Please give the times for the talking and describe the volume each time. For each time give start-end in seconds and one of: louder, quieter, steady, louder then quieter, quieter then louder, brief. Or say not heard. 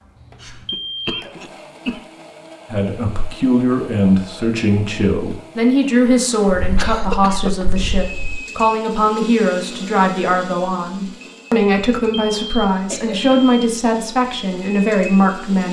2.7-15.6 steady.